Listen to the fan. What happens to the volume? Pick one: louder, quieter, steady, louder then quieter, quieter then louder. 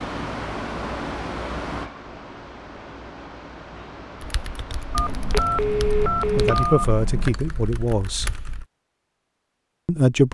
quieter.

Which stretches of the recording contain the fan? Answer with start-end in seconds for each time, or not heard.
0.0-6.5.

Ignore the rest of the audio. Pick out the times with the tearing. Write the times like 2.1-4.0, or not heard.
not heard.